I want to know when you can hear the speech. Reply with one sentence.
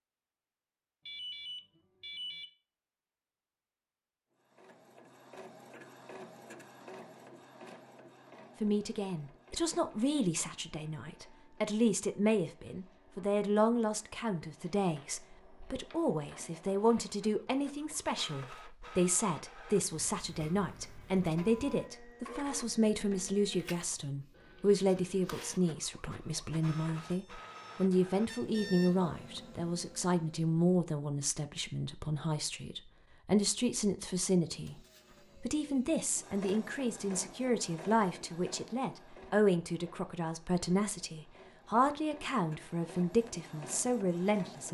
You can hear the speech from 8.6 to 34.8 s and from 35.4 to 44.6 s.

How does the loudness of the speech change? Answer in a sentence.
The volume of the speech stays about the same.